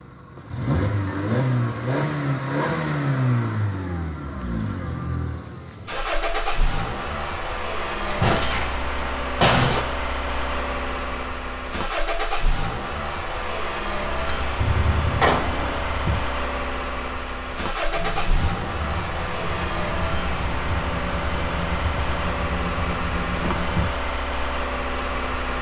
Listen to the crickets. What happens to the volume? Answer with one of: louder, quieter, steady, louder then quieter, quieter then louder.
steady.